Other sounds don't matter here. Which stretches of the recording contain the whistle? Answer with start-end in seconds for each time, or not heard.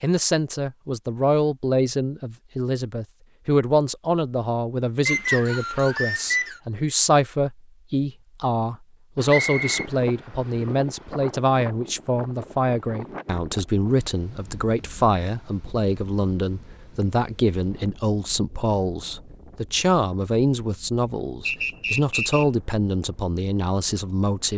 5.0-6.6, 9.2-9.8, 21.4-22.4.